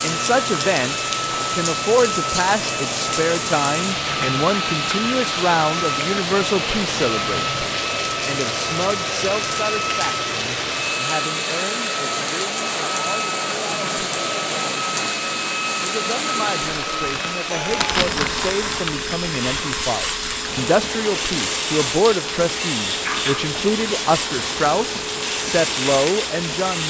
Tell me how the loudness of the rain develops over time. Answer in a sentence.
The volume of the rain stays about the same.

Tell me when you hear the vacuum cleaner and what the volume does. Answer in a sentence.
You can hear the vacuum cleaner from 0.0 to 26.8 s, at a steady volume.